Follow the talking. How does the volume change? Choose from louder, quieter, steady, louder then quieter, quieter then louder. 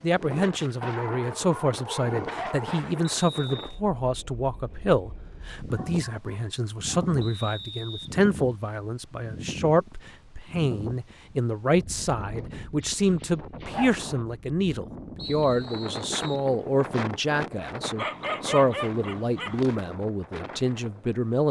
steady.